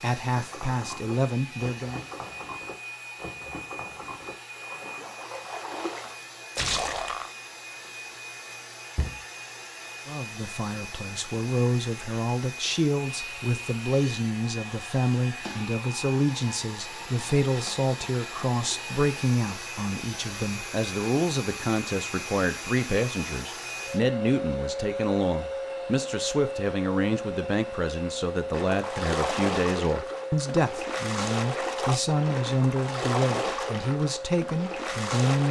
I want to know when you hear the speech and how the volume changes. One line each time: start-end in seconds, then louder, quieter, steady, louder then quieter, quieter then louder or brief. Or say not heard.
0.0-2.0 brief
10.1-35.4 steady.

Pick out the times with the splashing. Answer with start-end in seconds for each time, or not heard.
0.3-7.3, 28.5-35.4.